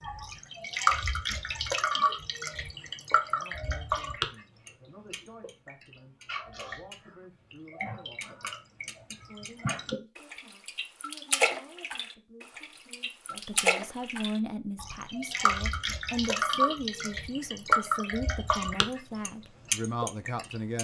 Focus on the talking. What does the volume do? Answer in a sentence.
The volume of the talking goes up.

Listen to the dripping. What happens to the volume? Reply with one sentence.
The volume of the dripping goes down, then up.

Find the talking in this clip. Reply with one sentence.
The talking can be heard from 3.2 to 20.8 s.